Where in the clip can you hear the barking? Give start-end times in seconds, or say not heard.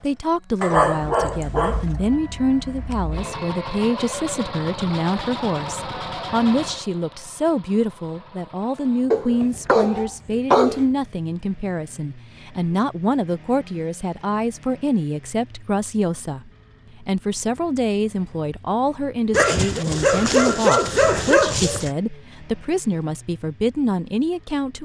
0.6-1.9, 9.1-10.8, 19.3-21.9.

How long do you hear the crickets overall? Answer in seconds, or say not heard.
not heard.